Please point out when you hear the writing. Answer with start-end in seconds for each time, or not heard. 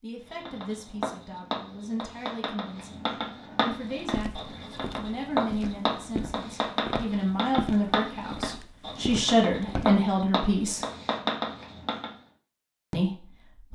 0.2-12.1.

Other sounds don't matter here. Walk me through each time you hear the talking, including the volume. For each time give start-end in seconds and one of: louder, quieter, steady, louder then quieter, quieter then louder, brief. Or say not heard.
0.0-10.8 louder
12.9-13.6 brief.